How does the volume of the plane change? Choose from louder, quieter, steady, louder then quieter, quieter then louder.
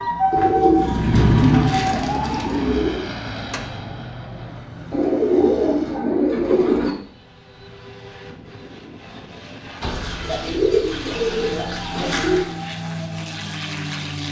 quieter then louder.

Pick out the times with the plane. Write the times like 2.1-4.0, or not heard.
0.0-14.2.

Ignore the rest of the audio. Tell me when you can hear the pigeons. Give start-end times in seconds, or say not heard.
0.3-3.0, 4.9-7.0, 9.8-12.6.